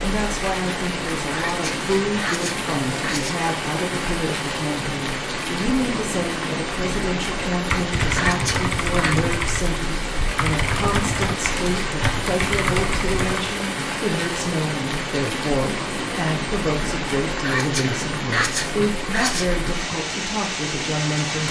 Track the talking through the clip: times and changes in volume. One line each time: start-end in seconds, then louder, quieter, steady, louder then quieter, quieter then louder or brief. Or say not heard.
0.0-21.4 steady.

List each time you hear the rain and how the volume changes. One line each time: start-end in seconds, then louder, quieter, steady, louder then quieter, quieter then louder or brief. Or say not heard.
0.0-21.4 steady.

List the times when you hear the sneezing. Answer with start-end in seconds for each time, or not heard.
1.3-3.4, 8.2-9.2, 17.4-19.9.